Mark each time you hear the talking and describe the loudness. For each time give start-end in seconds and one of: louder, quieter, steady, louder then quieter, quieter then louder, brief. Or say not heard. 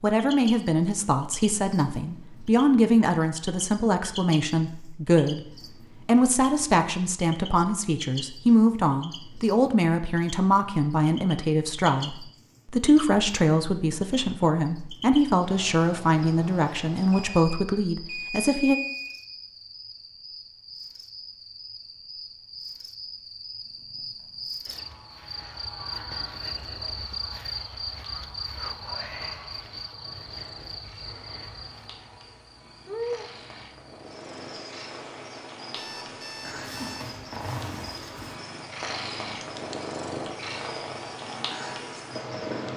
0.0-18.8 steady.